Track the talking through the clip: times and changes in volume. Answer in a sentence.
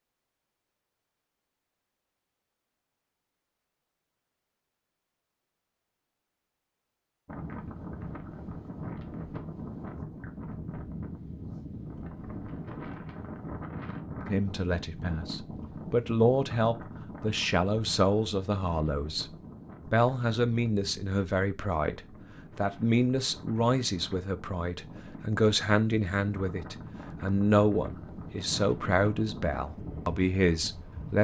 The talking can be heard from 14.2 to 31.1 s, at a steady volume.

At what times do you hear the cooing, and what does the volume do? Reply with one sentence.
The cooing can't be heard in this clip.